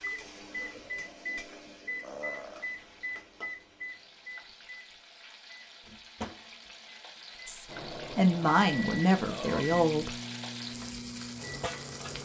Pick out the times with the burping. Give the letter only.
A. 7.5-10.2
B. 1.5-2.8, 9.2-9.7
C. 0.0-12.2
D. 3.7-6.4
B.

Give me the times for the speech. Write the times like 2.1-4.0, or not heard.
7.5-10.2.